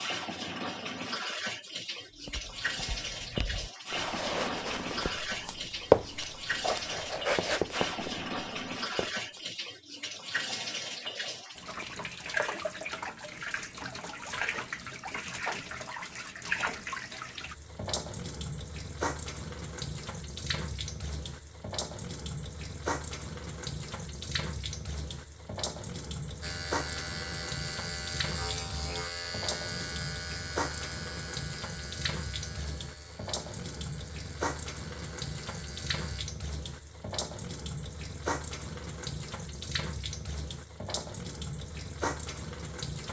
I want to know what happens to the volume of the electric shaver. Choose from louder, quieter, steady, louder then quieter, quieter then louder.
quieter.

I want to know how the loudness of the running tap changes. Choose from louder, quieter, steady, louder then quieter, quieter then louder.
steady.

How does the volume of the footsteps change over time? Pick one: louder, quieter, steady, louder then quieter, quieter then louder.
louder then quieter.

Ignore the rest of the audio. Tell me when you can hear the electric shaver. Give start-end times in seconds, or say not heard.
26.4-36.2.